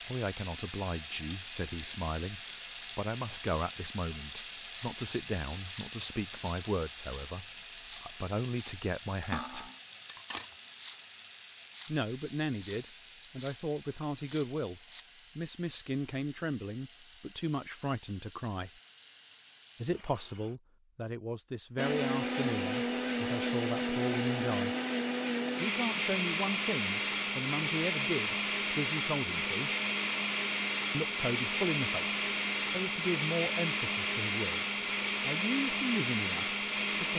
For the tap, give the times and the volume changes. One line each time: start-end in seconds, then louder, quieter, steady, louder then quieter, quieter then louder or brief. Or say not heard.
0.0-20.6 quieter.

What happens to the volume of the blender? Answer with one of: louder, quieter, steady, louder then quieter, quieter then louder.
steady.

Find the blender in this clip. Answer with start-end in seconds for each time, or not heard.
21.8-37.1.